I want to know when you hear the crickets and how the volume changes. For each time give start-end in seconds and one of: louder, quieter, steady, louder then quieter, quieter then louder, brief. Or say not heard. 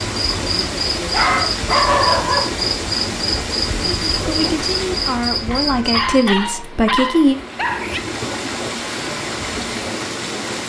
0.0-6.3 steady.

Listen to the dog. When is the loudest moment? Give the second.
2 s.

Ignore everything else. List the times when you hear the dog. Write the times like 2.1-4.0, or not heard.
1.1-2.6, 5.5-8.0.